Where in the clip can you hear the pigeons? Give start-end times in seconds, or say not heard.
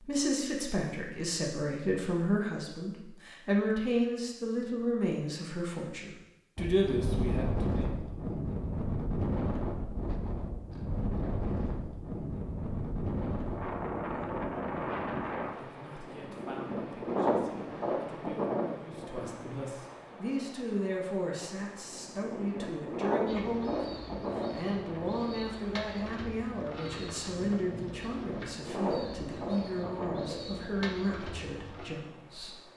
23.2-31.9.